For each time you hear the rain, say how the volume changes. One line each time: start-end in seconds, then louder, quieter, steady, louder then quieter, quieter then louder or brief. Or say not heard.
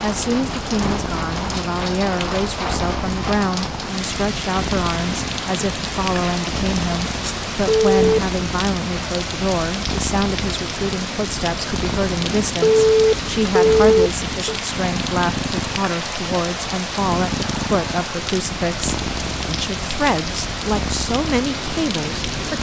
0.0-22.5 steady.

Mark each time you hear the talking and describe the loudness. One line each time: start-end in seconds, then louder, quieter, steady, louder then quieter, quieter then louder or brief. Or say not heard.
0.0-22.5 steady.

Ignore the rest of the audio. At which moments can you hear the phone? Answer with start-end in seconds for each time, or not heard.
7.7-8.2, 12.6-14.6.